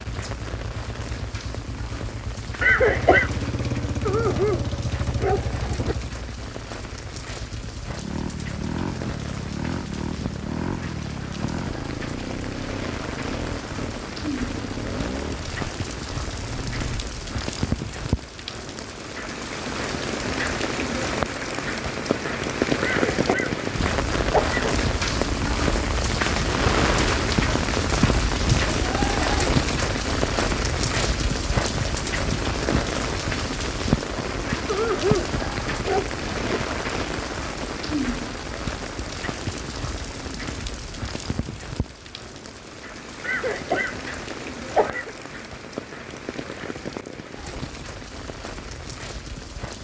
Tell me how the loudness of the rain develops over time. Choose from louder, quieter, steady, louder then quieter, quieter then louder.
louder then quieter.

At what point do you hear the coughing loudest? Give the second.
3 s.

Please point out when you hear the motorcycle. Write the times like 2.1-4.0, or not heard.
0.0-17.0.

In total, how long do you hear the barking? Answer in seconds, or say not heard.
4 s.